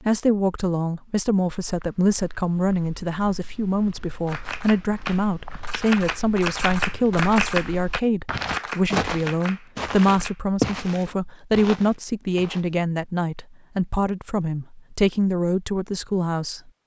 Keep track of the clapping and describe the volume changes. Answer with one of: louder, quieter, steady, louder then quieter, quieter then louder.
louder then quieter.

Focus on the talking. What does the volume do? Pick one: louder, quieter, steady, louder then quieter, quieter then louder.
steady.